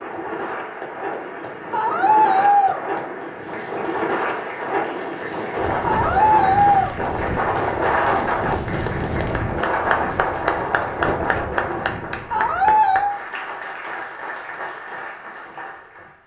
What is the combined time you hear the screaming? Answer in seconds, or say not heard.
3 s.